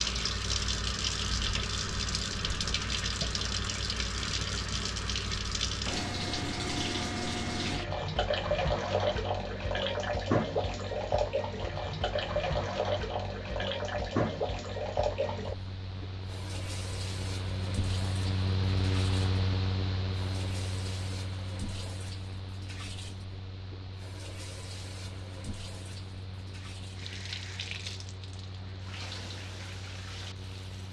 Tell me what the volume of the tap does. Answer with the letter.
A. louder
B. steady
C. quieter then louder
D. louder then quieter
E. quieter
E.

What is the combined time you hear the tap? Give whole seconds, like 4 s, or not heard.
31 s.